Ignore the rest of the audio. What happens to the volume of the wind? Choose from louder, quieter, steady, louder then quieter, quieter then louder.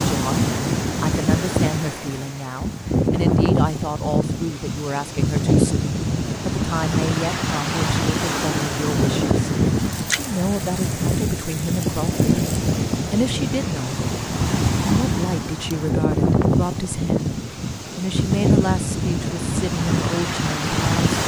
steady.